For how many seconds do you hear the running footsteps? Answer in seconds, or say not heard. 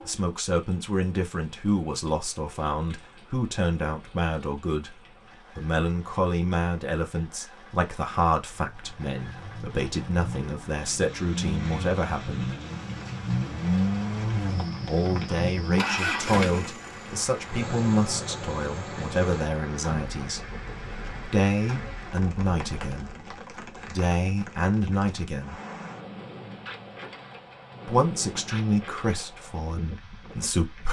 not heard.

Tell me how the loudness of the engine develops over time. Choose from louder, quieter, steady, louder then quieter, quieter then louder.
louder then quieter.